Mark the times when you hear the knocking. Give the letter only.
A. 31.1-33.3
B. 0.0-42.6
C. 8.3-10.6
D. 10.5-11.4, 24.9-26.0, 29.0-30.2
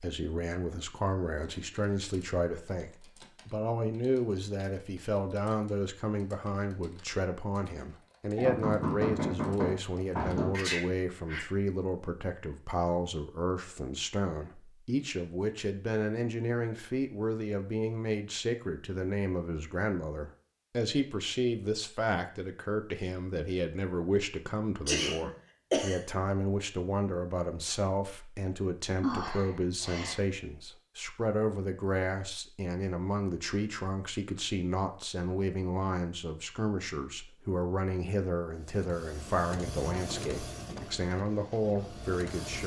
C.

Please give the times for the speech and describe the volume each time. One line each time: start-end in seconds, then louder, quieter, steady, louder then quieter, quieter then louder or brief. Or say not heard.
0.0-42.6 steady.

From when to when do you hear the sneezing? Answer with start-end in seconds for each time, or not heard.
10.5-11.4, 24.9-26.0, 29.0-30.2.